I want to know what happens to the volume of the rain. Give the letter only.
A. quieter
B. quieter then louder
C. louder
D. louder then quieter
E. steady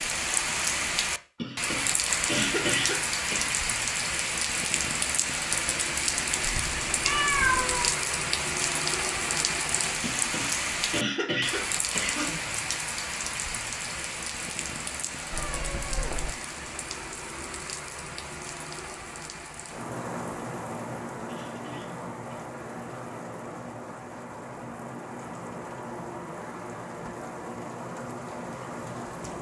A.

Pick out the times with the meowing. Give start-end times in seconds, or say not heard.
6.4-7.9, 15.3-16.3.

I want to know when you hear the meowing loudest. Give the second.
7 s.